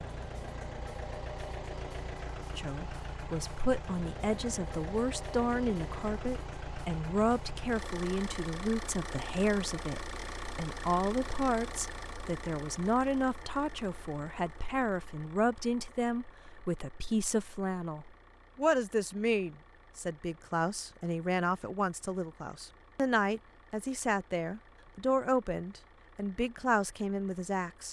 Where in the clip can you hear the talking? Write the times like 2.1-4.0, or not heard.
2.5-27.8.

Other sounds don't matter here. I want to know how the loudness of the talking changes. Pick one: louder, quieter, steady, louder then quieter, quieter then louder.
steady.